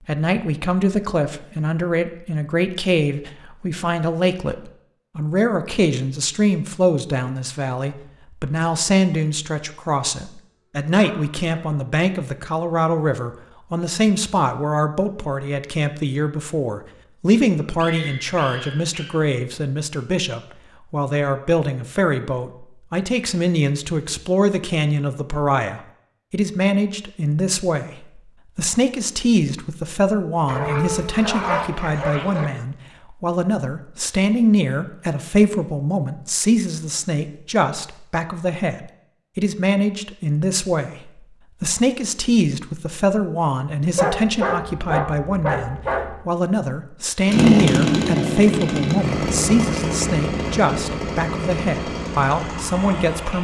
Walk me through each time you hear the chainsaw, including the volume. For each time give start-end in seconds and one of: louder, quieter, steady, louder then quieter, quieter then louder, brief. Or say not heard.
47.2-53.3 quieter.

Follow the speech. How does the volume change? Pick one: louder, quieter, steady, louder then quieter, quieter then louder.
steady.